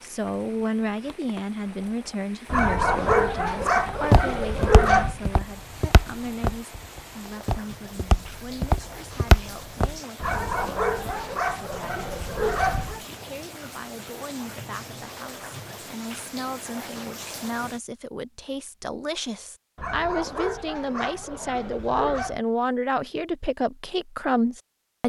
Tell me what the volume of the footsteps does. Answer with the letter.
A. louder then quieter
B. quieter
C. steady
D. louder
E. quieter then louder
E.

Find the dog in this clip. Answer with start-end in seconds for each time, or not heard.
2.5-5.2, 10.2-13.1, 19.8-22.4.